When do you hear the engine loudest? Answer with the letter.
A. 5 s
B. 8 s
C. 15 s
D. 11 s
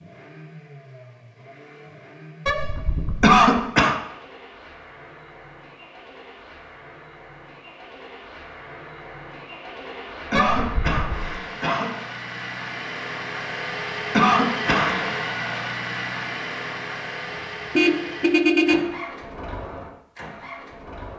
C.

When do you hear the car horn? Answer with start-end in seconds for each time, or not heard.
2.5-3.4, 10.3-11.3, 17.8-18.9.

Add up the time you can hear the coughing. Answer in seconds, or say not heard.
3 s.